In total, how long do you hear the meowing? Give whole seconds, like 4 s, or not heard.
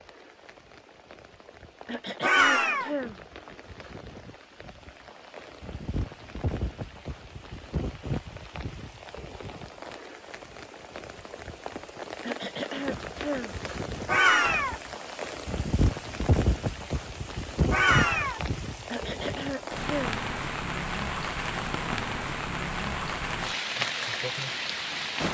2 s.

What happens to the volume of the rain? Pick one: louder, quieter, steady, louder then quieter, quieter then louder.
louder.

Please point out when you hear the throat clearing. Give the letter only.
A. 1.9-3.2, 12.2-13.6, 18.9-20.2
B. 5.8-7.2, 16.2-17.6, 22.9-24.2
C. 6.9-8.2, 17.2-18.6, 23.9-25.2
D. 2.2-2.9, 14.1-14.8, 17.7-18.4
A.